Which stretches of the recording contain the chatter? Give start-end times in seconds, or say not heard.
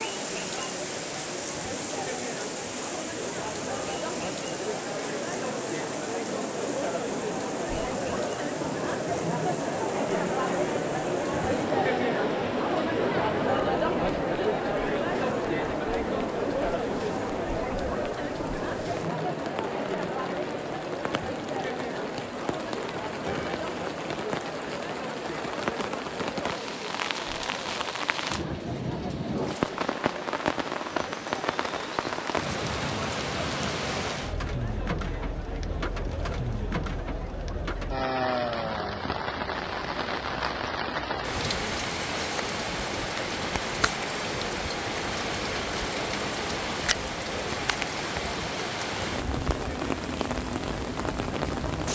0.0-51.9.